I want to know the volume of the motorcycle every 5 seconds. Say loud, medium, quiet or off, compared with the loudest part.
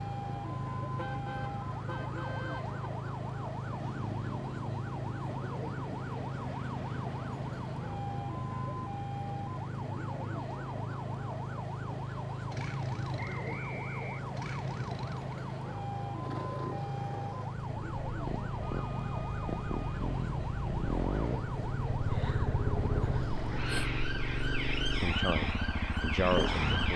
medium, medium, medium, medium, loud, loud.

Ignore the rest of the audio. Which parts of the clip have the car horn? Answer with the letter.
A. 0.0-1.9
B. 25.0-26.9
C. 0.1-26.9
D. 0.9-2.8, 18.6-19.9
D.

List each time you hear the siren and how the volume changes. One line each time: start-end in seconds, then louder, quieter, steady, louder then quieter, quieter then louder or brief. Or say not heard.
0.0-26.9 steady.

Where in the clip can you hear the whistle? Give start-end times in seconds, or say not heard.
13.2-14.2.